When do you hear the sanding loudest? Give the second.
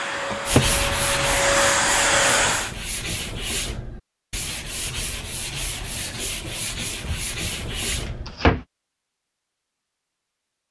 1 s.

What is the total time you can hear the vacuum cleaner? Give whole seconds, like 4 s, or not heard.
3 s.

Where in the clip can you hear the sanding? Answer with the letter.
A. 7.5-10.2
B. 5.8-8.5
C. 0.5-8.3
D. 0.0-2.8
C.